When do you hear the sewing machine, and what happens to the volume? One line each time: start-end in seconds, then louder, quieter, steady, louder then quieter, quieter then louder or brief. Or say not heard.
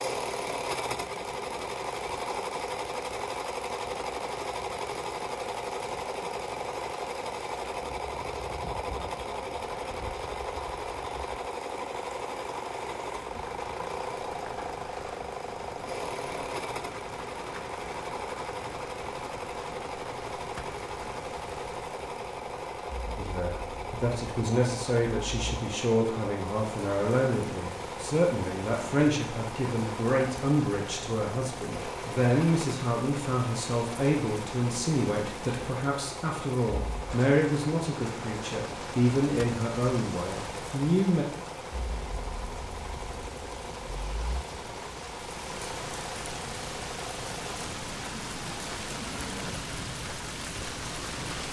0.0-51.4 quieter.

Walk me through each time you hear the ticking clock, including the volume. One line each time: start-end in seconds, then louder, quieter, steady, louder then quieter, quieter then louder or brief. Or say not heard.
not heard.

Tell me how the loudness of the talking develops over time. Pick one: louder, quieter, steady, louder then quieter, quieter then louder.
steady.